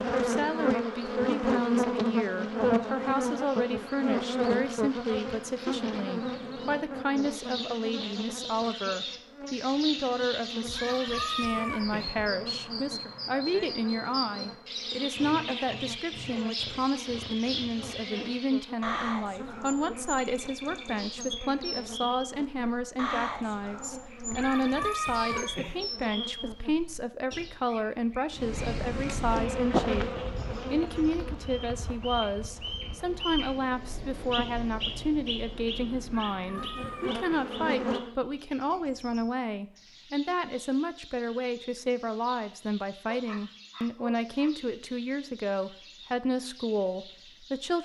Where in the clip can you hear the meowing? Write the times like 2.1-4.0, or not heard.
10.7-12.3, 24.3-25.9, 36.2-37.5.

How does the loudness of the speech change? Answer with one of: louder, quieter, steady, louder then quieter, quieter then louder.
steady.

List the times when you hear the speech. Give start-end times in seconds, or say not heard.
0.1-47.8.